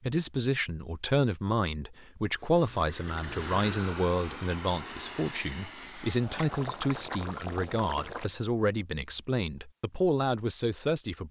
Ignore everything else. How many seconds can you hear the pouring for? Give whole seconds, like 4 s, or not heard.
3 s.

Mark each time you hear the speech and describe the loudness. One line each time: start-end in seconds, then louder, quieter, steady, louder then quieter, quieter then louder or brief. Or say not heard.
0.0-11.2 steady.